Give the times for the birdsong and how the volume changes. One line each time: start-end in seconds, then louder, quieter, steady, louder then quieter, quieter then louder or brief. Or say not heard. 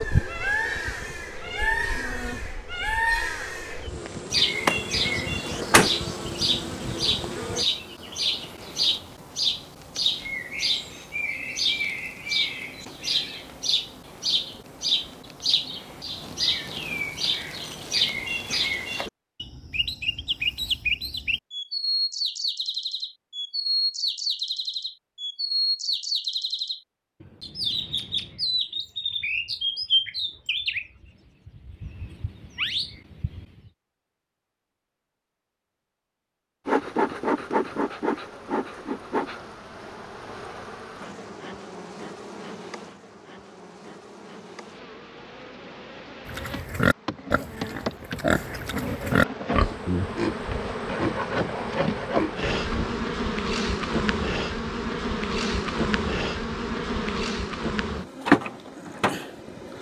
0.0-33.7 steady.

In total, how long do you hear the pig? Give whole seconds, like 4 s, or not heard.
7 s.